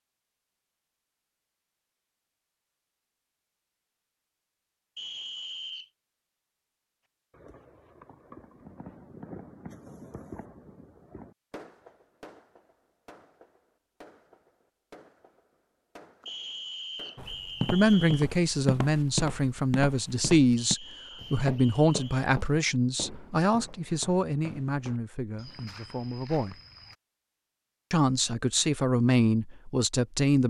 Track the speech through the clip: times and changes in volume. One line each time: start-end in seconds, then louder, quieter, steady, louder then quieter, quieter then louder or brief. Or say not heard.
17.7-26.6 quieter
27.9-30.4 brief.